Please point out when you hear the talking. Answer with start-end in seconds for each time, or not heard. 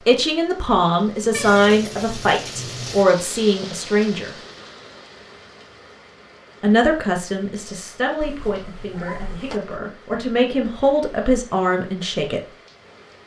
0.1-4.3, 6.6-12.4.